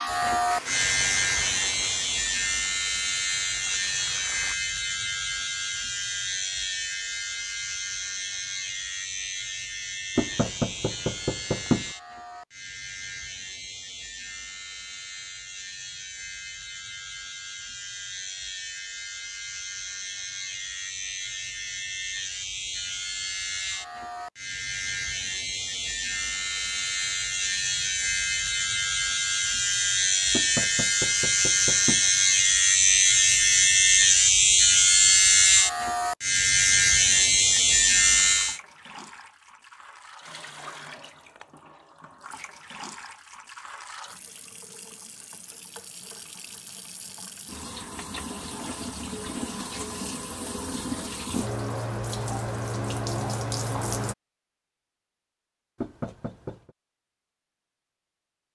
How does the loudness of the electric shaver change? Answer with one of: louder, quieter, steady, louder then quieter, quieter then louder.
quieter then louder.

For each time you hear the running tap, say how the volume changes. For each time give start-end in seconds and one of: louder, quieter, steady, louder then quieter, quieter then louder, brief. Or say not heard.
0.0-4.5 quieter then louder
37.1-54.1 louder.